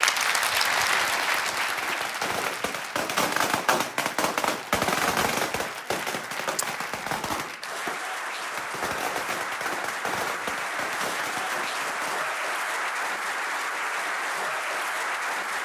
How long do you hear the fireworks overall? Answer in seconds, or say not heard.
11 s.